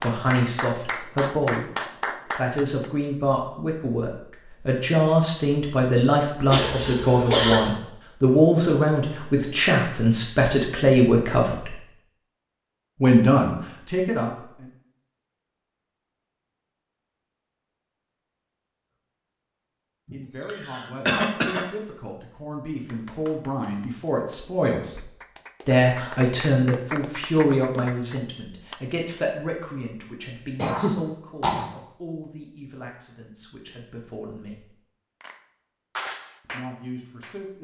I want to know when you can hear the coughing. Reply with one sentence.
You can hear the coughing from 6.5 to 7.7 s, from 20.1 to 21.6 s and from 30.6 to 31.7 s.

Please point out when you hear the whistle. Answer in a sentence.
You can't hear the whistle here.